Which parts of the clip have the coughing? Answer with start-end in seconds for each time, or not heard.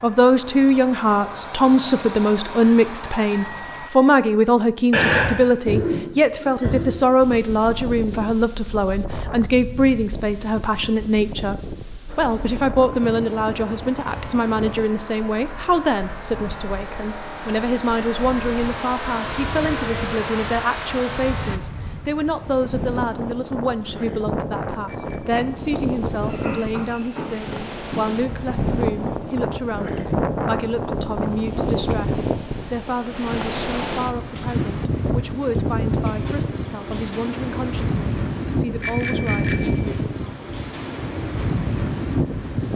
4.9-7.0, 26.2-28.0.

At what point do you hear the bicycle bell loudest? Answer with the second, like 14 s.
39 s.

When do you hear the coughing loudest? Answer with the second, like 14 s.
5 s.